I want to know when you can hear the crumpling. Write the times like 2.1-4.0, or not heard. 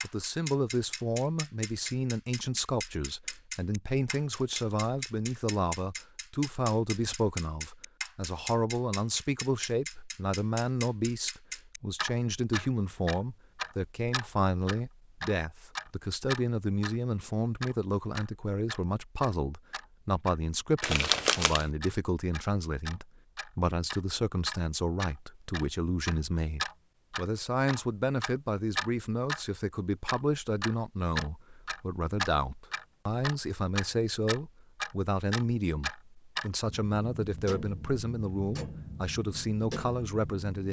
20.8-21.6.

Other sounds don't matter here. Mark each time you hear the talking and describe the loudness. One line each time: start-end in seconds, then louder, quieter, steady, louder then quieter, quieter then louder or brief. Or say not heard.
0.0-40.6 steady.